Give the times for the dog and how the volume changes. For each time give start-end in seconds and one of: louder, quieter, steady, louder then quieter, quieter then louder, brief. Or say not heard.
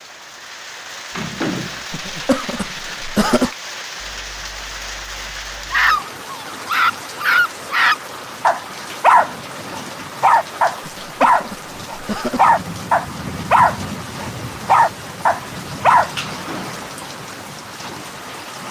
5.7-16.1 steady.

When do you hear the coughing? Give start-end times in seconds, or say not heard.
1.9-3.5, 10.8-12.6.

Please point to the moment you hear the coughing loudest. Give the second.
3 s.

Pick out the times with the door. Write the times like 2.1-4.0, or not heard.
1.1-1.9, 16.2-16.9.